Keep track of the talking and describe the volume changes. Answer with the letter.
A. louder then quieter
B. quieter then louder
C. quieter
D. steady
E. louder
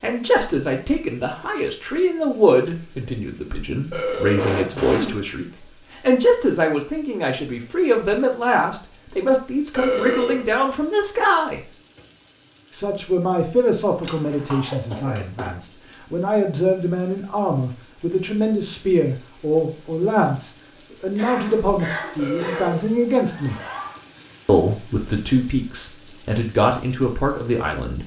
D.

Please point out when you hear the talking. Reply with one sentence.
You can hear the talking from 0.0 to 11.6 s, from 12.7 to 23.6 s and from 24.4 to 28.0 s.